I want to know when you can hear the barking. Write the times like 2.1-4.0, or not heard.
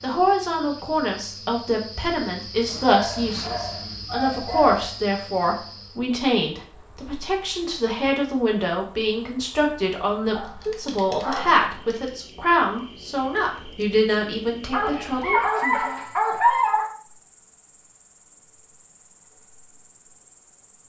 3.0-4.8, 10.3-12.1, 14.7-16.9.